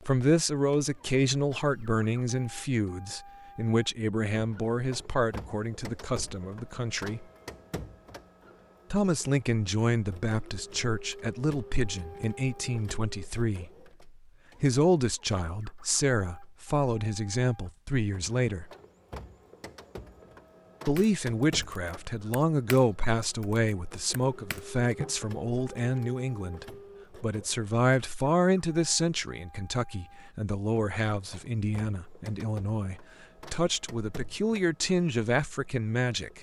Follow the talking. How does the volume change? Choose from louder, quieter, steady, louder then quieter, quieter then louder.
steady.